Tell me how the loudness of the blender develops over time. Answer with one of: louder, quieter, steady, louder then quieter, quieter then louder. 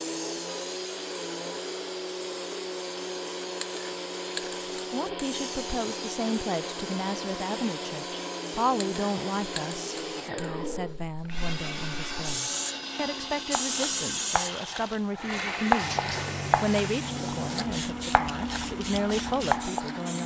steady.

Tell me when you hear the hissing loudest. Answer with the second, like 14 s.
14 s.